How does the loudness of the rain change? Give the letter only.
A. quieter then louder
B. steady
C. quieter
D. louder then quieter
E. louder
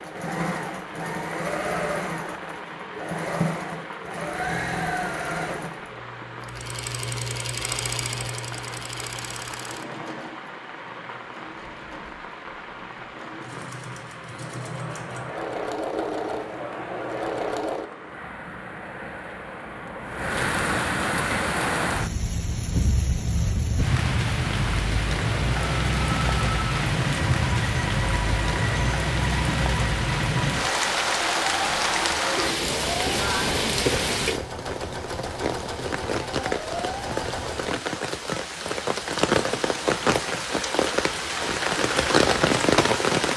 E.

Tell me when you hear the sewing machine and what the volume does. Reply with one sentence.
The sewing machine can be heard from 0.0 to 17.9 s, getting quieter then louder; and from 25.8 to 37.8 s, at a steady volume.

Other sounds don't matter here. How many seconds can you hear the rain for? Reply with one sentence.
The rain can be heard for 43 seconds in total.